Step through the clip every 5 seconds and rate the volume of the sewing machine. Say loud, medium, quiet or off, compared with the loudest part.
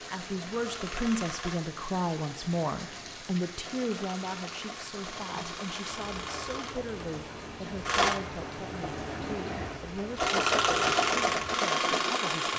quiet, medium, loud.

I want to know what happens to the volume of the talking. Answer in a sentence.
The volume of the talking goes down.